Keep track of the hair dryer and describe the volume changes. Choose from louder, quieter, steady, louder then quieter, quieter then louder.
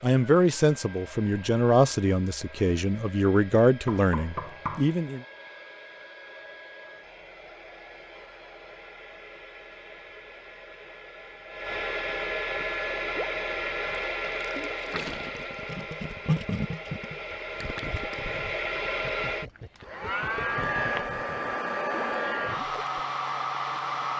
louder.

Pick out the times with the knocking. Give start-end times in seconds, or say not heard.
3.9-4.9.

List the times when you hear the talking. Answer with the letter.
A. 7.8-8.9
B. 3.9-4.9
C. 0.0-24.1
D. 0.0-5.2
D.